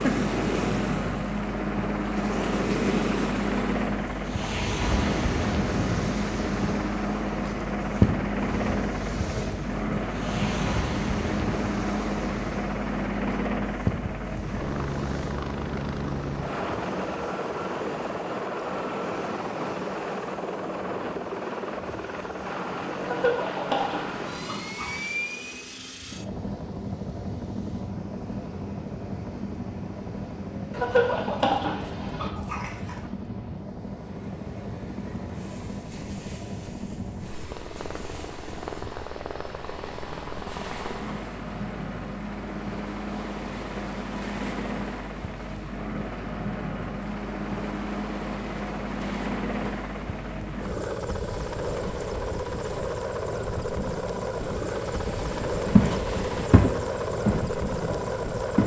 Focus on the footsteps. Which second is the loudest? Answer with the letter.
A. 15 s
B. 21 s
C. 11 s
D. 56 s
D.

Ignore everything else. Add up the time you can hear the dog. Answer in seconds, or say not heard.
4 s.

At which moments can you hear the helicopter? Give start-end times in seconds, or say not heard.
0.0-58.6.